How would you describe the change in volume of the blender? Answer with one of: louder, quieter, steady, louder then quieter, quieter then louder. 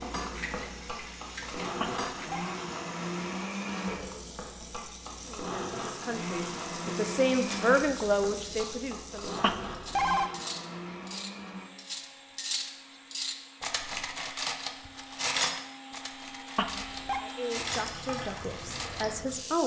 quieter.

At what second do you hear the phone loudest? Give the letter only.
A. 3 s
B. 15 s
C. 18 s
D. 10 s
D.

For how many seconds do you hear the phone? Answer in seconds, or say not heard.
2 s.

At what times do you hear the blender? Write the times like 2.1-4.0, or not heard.
0.0-17.6.